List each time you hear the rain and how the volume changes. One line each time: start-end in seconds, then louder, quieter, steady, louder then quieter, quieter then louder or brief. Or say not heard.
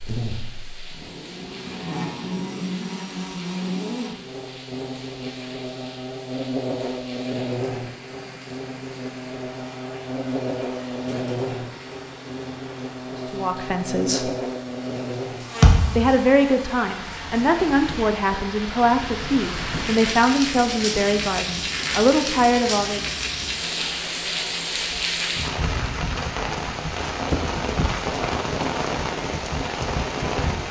0.0-30.6 louder.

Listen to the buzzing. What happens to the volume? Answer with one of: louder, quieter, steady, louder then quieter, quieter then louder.
steady.